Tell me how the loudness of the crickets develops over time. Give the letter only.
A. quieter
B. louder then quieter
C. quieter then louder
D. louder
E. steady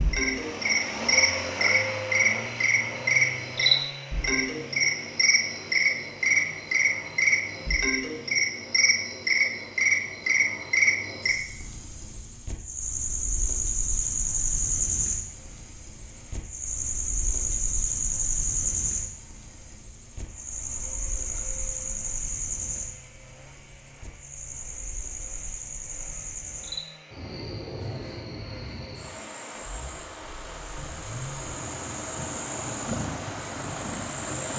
A.